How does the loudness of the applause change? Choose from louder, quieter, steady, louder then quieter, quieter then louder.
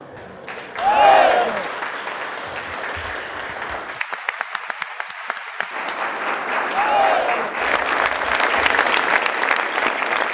louder.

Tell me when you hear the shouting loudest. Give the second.
1 s.